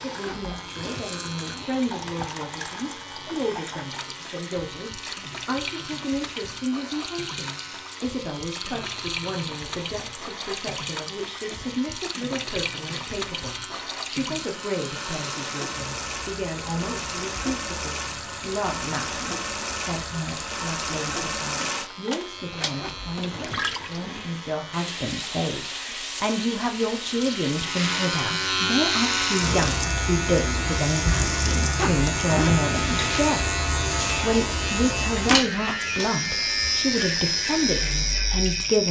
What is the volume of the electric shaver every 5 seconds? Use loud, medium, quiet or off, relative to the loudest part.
quiet, quiet, quiet, quiet, quiet, loud, loud, loud.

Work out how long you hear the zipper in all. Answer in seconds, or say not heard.
5 s.